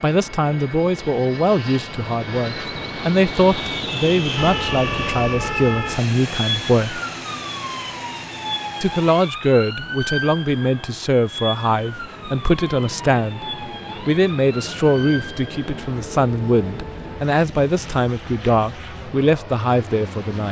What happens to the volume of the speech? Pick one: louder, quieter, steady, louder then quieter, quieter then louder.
steady.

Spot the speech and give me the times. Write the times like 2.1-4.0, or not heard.
0.0-7.0, 8.8-20.4.